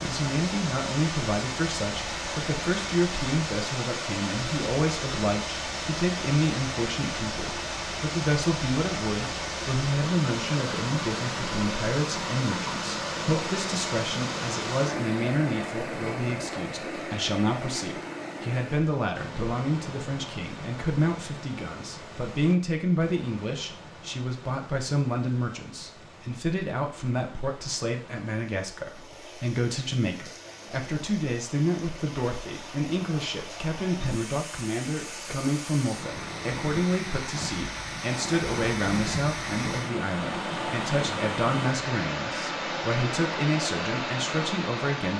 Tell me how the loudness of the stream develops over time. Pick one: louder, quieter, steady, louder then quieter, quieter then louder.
quieter then louder.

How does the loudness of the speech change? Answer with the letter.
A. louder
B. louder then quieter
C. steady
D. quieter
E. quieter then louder
C.